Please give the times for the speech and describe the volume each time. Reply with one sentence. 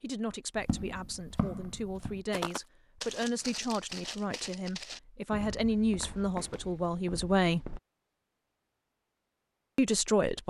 The speech can be heard from 0.0 to 7.8 s, getting louder; and briefly from 9.8 to 10.4 s.